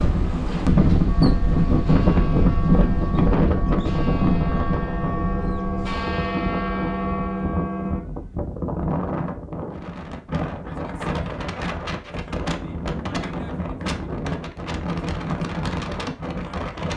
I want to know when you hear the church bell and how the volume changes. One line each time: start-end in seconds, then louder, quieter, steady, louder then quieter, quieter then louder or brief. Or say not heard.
1.1-8.0 louder.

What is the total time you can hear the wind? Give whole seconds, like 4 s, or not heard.
17 s.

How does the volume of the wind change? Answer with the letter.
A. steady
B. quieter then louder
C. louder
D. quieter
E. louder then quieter
D.